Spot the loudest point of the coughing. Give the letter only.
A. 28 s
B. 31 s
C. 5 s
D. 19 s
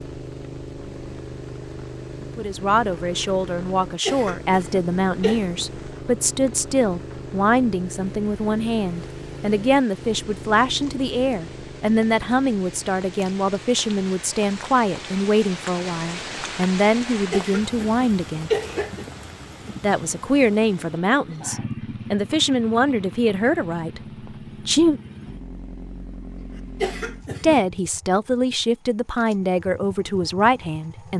D.